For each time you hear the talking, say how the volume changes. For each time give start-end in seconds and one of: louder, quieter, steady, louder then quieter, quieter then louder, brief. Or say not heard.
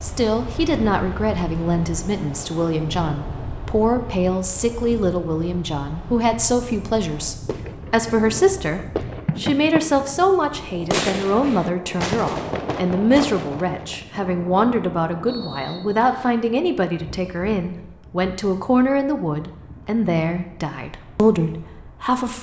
0.0-22.3 steady.